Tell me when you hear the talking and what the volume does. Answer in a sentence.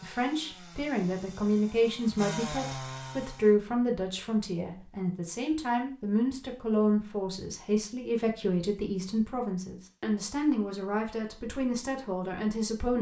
You can hear the talking from 0.0 to 12.9 s, at a steady volume.